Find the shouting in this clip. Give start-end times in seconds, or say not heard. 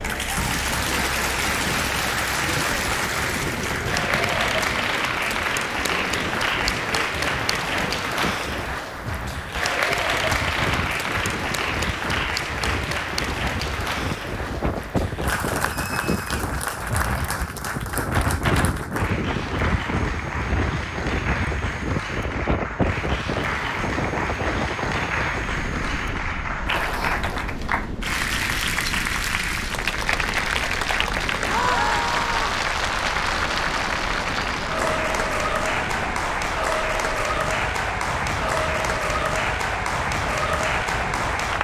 31.4-32.5.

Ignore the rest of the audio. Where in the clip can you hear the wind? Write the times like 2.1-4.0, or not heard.
0.0-41.5.